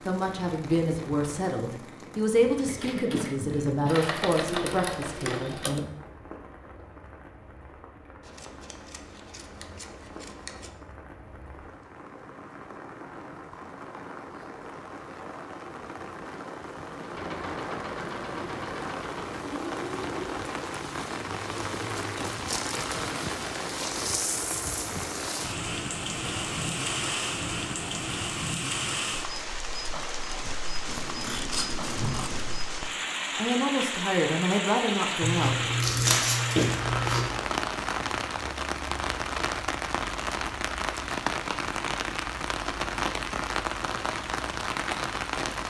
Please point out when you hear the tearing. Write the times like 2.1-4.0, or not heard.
35.2-37.2.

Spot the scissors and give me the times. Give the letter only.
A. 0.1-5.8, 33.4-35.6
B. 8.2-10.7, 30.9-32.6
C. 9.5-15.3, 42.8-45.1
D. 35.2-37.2
B.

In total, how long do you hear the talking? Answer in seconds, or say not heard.
8 s.